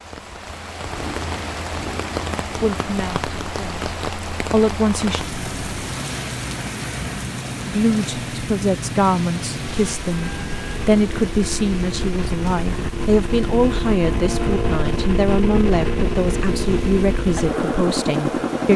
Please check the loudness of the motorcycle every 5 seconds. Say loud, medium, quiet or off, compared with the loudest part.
quiet, medium, loud, loud.